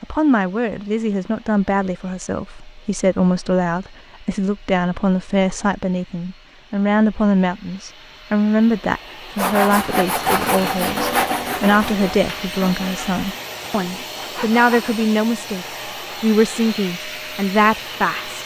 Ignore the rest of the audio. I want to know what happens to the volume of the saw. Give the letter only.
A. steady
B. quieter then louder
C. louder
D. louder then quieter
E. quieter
E.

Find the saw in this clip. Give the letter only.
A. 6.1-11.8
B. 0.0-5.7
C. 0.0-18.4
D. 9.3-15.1
D.